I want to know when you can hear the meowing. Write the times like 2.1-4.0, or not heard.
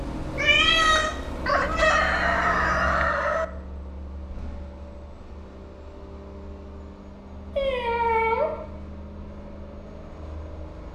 0.3-2.8, 7.5-8.6.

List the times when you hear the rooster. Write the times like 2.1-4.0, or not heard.
1.4-3.5.